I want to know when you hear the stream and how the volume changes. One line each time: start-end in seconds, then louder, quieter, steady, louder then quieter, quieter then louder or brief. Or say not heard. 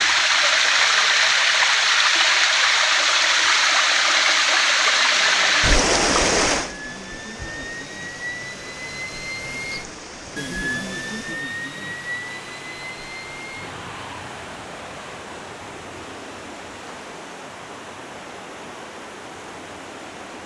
0.0-20.4 quieter.